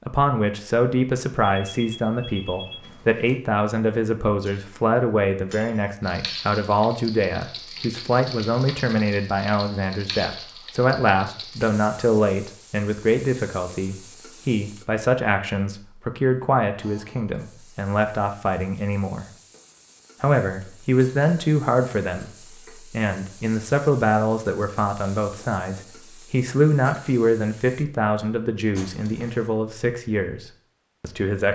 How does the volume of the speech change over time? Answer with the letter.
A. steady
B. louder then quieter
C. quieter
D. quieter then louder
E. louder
A.